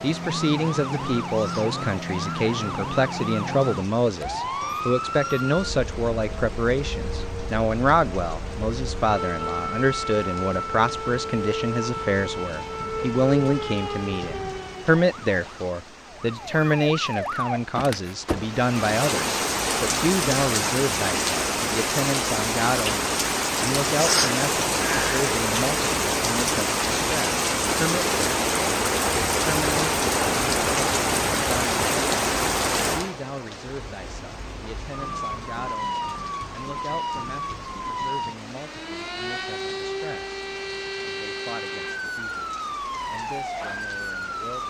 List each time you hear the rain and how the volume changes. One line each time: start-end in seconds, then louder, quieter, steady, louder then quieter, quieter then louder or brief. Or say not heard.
0.0-44.6 louder then quieter.